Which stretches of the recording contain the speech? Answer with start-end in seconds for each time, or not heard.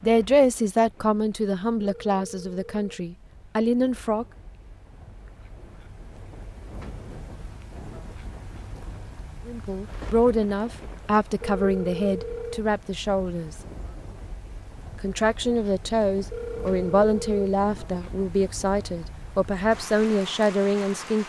0.0-4.2, 9.4-13.6, 15.0-21.2.